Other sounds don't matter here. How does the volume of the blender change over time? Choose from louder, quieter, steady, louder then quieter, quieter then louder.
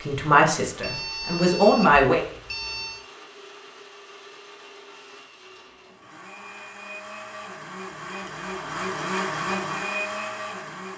louder.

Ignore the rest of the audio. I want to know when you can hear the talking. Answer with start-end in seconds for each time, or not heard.
0.0-2.2.